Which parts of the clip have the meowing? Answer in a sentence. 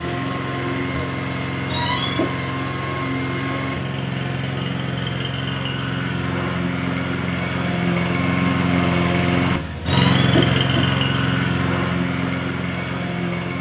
The meowing can be heard from 1.7 to 2.3 s and from 9.8 to 10.9 s.